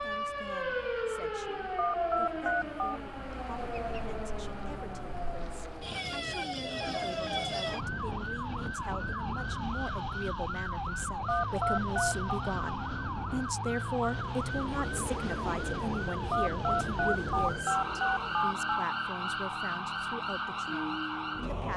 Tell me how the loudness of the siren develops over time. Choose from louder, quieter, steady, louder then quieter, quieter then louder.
steady.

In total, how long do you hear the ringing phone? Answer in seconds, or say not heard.
5 s.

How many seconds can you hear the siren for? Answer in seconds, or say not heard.
22 s.